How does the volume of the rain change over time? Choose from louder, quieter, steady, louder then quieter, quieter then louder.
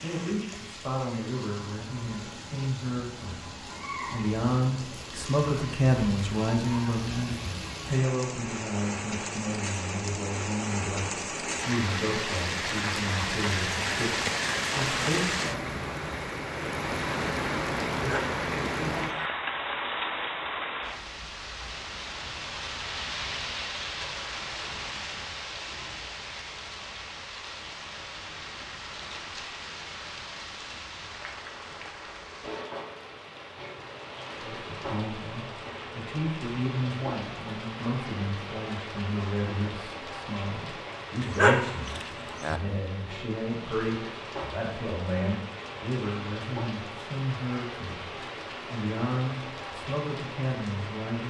louder then quieter.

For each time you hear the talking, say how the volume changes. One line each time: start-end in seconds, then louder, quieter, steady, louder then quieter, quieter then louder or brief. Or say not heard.
0.0-15.7 louder then quieter
34.4-51.2 steady.